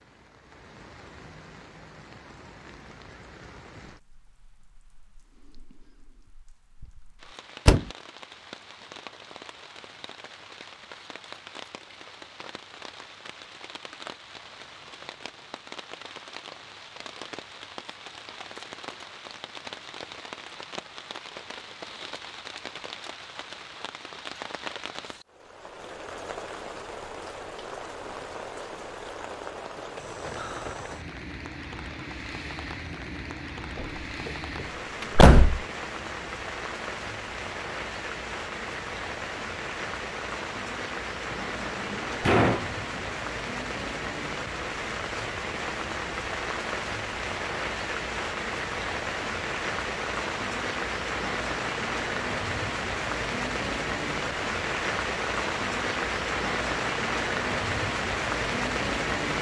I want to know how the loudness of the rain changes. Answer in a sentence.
The volume of the rain goes up.